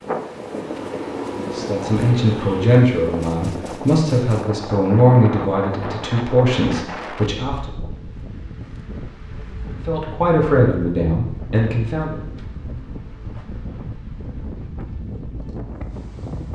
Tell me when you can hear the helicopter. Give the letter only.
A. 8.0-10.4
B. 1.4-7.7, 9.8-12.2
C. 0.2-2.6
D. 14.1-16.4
C.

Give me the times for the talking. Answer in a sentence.
The talking can be heard from 1.4 to 7.7 s and from 9.8 to 12.2 s.